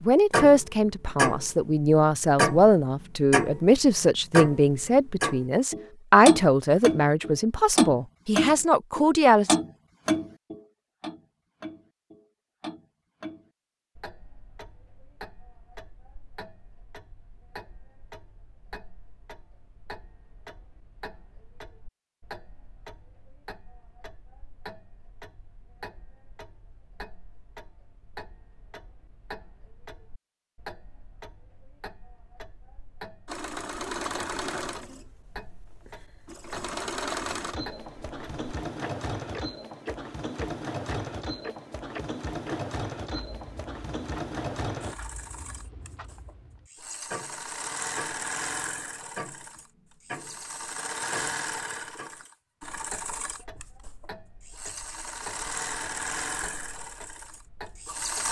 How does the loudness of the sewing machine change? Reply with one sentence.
The loudness of the sewing machine stays about the same.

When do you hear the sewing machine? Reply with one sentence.
The sewing machine can be heard from 33.2 to 58.2 s.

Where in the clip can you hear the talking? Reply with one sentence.
The talking can be heard from 0.0 to 9.6 s.